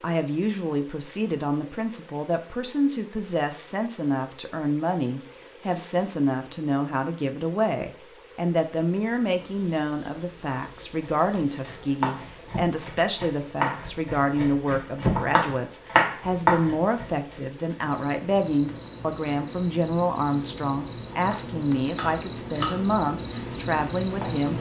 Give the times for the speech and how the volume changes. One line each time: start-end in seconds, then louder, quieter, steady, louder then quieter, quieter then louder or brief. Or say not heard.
0.0-24.5 steady.